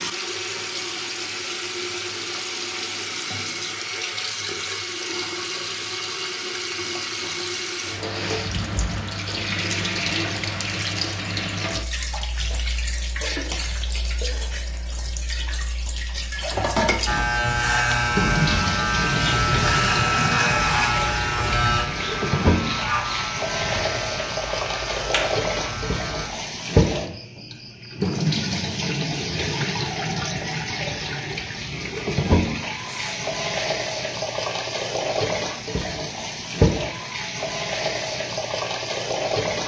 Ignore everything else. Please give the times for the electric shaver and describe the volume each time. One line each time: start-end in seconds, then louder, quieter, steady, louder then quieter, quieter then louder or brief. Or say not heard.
17.1-26.3 quieter.